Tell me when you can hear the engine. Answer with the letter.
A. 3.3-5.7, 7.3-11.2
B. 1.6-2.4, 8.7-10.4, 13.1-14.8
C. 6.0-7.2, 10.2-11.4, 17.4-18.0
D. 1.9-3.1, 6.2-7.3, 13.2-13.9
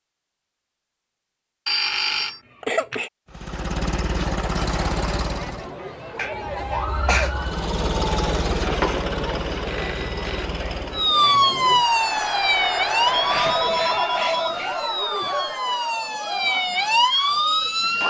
A.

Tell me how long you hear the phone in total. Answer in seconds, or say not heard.
4 s.